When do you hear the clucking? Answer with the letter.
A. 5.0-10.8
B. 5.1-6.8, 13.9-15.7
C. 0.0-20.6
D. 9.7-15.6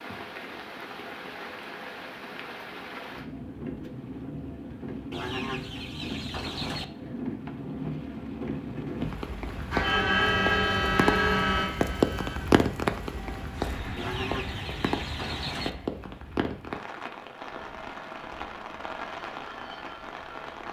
B.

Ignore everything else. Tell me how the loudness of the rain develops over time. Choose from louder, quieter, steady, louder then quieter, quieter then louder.
louder then quieter.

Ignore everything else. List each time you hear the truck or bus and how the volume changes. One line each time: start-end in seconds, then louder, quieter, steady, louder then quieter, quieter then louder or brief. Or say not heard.
9.7-15.6 quieter.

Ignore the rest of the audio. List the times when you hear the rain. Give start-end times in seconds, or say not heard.
0.0-20.6.